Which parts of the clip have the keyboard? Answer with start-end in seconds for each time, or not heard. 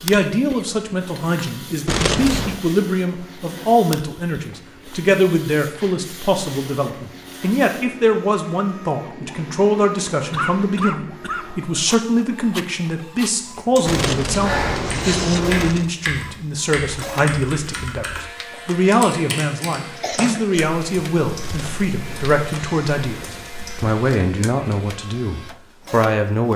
13.6-24.0.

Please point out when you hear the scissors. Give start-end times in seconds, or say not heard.
1.9-2.6, 13.8-15.9, 21.4-23.6.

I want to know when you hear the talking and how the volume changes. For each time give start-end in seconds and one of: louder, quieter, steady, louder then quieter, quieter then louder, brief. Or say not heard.
0.0-26.5 steady.